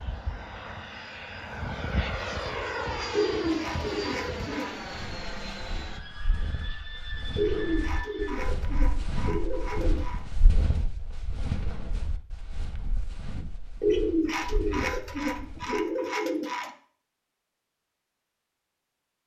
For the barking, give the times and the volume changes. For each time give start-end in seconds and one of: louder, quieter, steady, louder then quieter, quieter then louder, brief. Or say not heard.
not heard.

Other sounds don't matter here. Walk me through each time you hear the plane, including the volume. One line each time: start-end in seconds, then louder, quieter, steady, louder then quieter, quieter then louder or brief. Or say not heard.
0.0-8.4 louder then quieter.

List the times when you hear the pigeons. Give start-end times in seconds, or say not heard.
3.1-4.8, 7.3-10.2, 13.8-16.7.